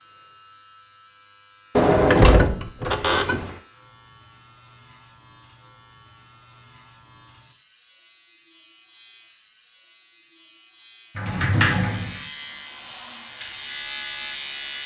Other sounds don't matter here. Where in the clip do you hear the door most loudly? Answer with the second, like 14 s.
2 s.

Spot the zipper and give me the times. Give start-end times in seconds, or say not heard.
2.9-3.6.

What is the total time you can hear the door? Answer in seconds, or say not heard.
3 s.